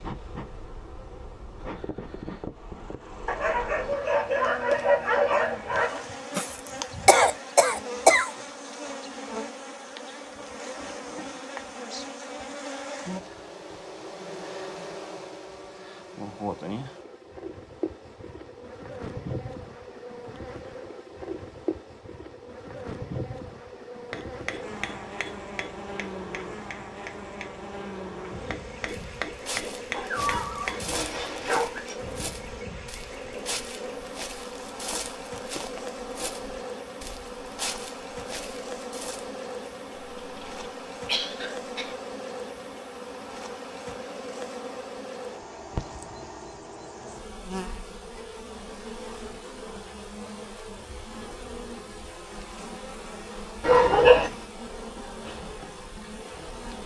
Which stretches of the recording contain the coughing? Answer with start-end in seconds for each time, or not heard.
6.3-8.3, 40.0-42.0.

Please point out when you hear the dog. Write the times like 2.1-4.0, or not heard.
3.2-6.0, 29.9-31.9, 53.6-54.3.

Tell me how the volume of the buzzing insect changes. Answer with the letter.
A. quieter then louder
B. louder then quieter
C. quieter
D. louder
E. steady
E.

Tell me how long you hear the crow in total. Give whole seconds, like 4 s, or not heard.
not heard.